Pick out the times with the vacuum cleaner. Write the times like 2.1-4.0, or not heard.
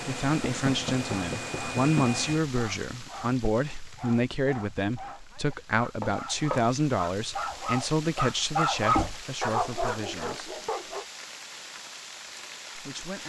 0.0-2.4.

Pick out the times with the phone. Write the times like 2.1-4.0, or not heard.
not heard.